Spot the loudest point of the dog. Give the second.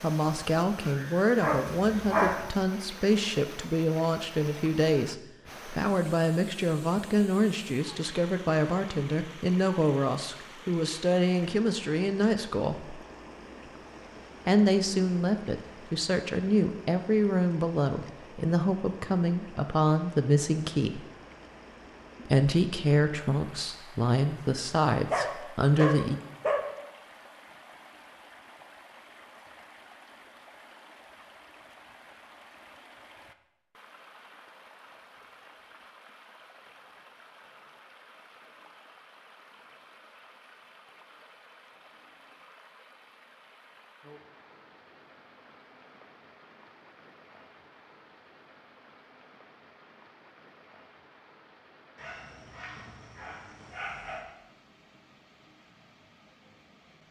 2 s.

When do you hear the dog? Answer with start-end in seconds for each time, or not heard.
1.4-2.5, 25.1-26.7, 52.0-54.2.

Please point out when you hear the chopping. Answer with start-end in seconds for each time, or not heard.
not heard.